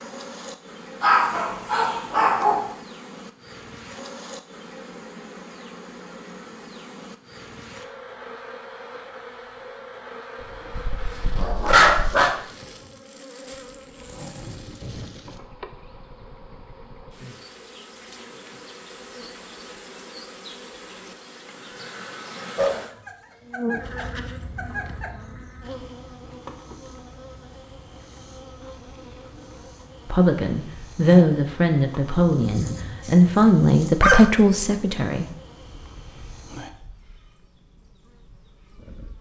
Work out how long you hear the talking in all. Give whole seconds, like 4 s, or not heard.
5 s.